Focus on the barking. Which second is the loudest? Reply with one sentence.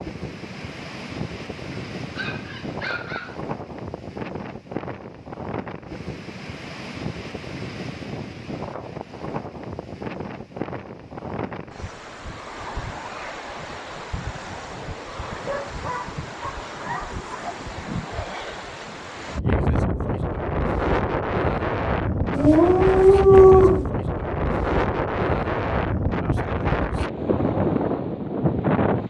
The loudest moment of the barking is at 23 seconds.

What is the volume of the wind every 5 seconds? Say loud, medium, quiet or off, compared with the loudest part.
medium, medium, medium, medium, loud, loud.